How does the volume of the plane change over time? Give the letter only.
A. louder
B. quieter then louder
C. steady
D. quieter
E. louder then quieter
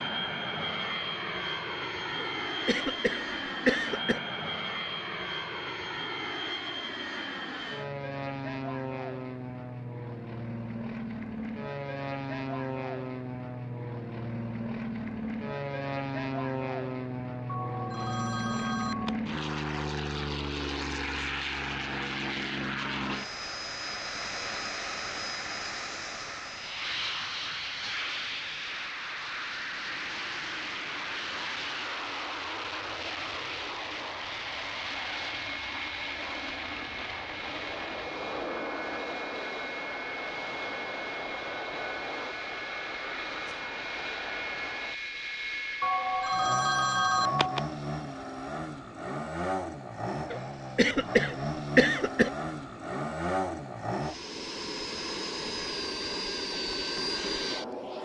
C.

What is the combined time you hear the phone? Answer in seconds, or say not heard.
4 s.